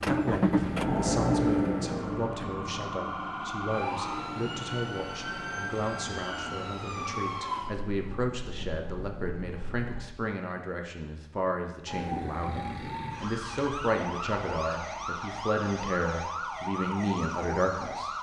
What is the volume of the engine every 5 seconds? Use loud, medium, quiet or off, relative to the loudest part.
loud, quiet, off, off.